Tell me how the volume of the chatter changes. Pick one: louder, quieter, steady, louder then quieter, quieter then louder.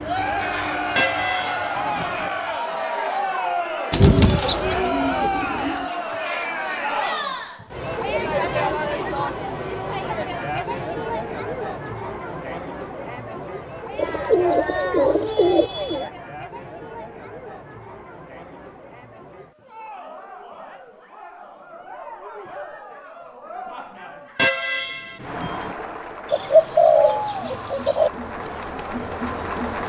quieter then louder.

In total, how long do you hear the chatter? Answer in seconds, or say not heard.
30 s.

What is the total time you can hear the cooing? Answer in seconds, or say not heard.
6 s.